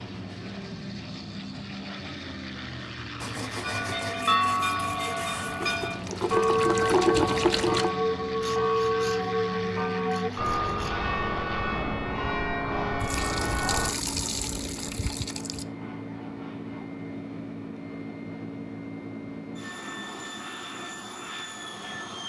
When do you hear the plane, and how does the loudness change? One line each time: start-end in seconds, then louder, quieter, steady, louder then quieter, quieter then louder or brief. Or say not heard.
0.0-22.2 steady.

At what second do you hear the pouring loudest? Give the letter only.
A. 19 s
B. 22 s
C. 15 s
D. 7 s
D.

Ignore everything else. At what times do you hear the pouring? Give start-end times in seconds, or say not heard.
5.6-7.9, 13.0-15.7.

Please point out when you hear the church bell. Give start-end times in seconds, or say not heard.
3.6-13.9.